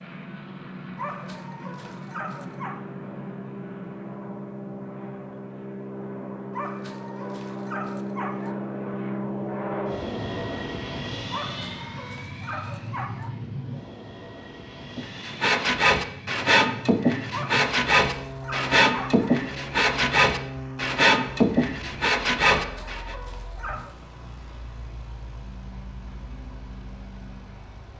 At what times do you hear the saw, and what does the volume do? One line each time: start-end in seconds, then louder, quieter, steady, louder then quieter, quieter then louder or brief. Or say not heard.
14.9-23.1 steady.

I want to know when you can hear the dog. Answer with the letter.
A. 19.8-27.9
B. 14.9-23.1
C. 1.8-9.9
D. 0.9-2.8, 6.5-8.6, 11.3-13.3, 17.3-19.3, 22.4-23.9
D.